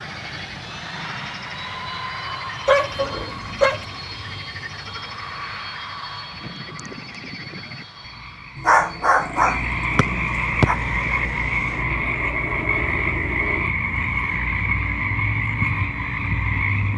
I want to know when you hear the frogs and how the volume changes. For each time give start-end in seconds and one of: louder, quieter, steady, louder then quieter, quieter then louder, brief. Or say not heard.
0.0-16.9 louder.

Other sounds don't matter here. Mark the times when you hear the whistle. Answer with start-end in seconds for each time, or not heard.
9.9-10.7.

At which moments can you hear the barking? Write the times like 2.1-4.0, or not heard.
2.6-3.9, 8.6-10.8.